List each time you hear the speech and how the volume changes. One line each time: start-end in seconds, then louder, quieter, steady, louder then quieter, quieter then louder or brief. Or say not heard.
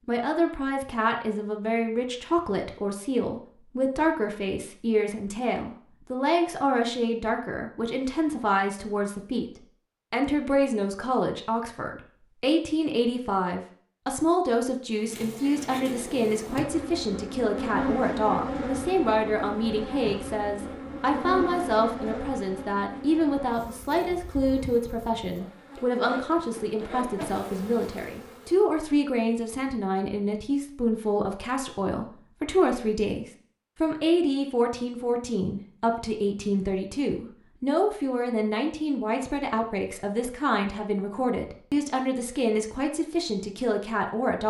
0.1-9.5 steady
10.1-44.4 steady.